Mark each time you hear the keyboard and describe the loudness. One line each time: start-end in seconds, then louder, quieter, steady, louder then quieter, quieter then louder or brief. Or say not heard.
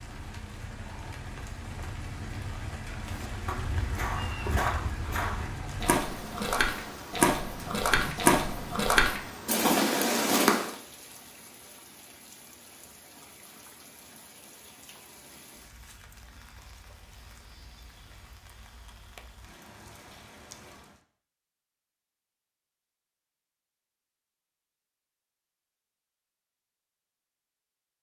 not heard.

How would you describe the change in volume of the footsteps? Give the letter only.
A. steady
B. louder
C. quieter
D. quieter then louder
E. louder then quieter
B.